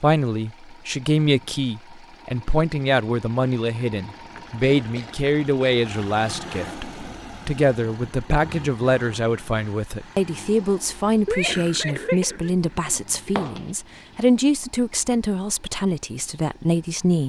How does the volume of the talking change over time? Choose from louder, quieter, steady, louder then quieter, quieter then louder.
steady.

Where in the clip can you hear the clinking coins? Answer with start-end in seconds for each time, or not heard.
13.3-14.1.